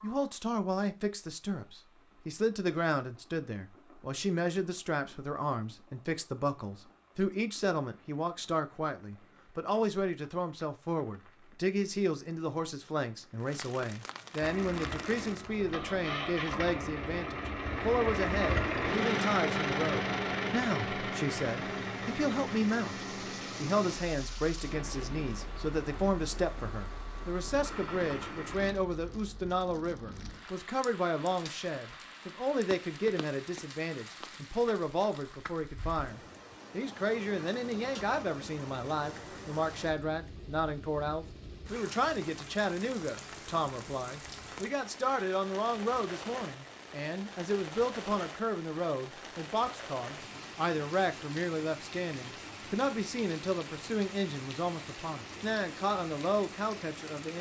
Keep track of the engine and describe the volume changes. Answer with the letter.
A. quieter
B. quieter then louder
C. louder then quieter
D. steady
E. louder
C.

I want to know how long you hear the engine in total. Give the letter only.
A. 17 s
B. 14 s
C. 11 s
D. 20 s
B.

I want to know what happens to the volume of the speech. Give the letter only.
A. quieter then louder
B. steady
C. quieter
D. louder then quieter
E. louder
B.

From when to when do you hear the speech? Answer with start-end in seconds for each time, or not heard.
0.0-57.3.